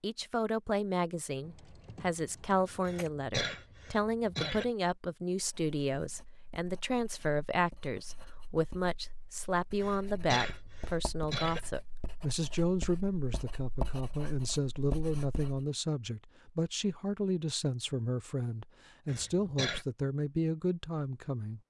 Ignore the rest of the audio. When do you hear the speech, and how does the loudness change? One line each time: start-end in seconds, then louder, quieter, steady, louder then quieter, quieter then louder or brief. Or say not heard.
0.0-21.6 steady.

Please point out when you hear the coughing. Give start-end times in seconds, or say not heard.
2.9-4.7, 9.8-11.7, 19.1-19.9.